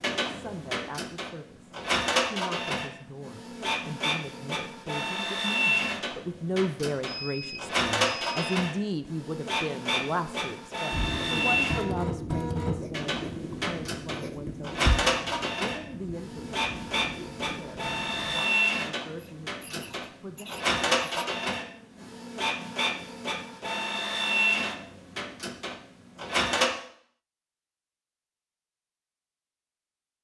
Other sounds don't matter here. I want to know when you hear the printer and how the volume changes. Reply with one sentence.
You can hear the printer from 0.0 to 26.7 s, at a steady volume.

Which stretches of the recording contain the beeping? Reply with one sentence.
You can hear the beeping from 7.0 to 8.6 s.